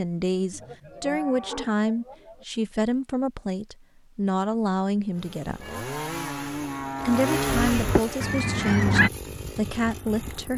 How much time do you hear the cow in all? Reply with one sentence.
The cow can be heard for 5 seconds in total.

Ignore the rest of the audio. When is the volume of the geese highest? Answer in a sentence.
The loudest moment of the geese is at 9 seconds.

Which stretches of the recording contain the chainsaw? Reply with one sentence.
The chainsaw can be heard from 5.1 to 10.5 s.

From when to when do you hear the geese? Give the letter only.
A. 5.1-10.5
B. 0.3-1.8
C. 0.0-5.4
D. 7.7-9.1
D.